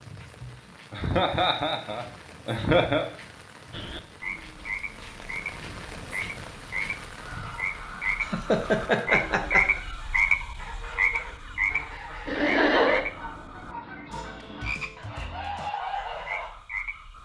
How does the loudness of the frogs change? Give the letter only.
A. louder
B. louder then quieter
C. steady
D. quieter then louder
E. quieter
B.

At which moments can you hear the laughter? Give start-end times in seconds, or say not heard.
0.4-3.1, 8.2-9.8, 12.2-13.1.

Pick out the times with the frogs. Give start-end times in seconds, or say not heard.
3.7-17.2.